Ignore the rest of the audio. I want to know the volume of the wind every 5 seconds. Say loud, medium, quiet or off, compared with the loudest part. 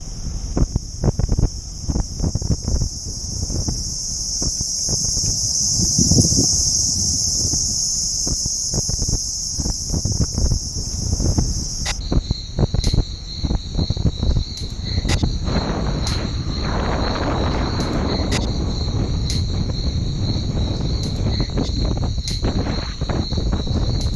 loud, medium, loud, loud, loud.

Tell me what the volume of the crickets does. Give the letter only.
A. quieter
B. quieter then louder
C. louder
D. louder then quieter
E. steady
D.